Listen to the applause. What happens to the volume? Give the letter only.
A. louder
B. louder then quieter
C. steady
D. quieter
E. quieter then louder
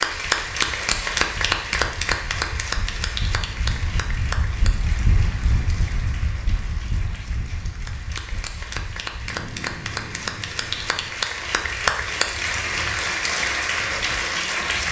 E.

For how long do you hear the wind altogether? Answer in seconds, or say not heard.
15 s.